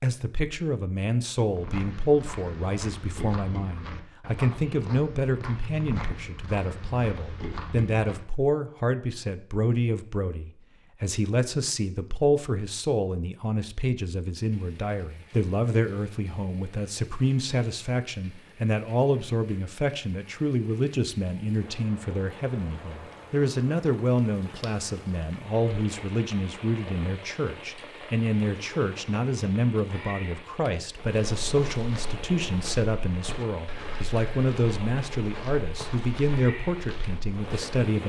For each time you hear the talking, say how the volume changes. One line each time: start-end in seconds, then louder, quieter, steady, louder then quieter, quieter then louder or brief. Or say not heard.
0.0-38.0 steady.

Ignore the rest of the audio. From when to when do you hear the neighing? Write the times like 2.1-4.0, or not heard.
not heard.